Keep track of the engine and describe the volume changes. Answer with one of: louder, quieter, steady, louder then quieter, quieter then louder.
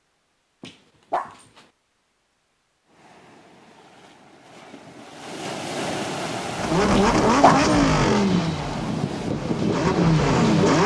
quieter then louder.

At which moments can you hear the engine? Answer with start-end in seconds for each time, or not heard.
6.5-10.8.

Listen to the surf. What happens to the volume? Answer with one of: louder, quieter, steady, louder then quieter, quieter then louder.
louder.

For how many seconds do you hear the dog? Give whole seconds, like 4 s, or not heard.
2 s.